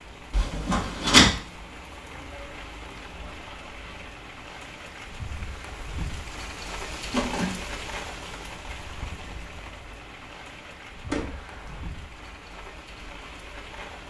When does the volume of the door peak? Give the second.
1 s.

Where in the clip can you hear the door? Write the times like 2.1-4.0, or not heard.
0.3-1.3, 7.1-7.7, 11.1-11.8.